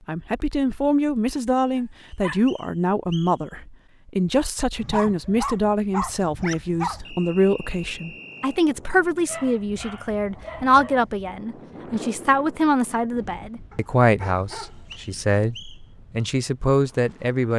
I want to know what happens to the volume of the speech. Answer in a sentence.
The loudness of the speech stays about the same.